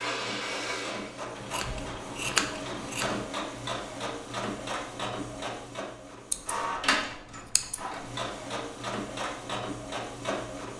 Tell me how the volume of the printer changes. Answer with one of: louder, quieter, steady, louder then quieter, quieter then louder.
steady.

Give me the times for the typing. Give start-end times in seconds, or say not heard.
not heard.